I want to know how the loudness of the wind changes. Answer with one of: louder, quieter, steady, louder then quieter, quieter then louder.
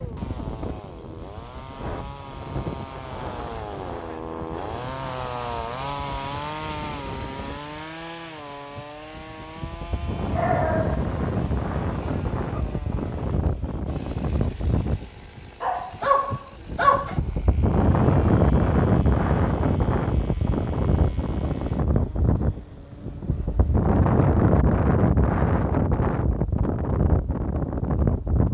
louder.